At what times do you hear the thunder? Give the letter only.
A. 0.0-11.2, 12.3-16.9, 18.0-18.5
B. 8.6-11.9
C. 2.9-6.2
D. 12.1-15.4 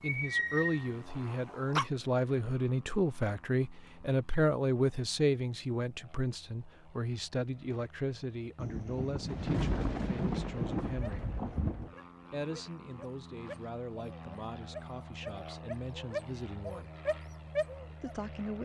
B.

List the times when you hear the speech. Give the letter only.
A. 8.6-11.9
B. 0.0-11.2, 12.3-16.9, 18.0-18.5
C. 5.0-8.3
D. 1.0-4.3
B.